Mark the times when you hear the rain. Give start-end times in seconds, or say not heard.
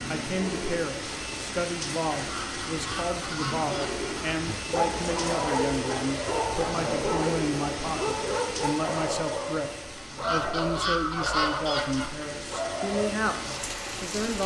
0.0-14.4.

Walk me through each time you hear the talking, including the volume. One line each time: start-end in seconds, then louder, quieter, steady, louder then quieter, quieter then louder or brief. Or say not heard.
0.0-14.4 steady.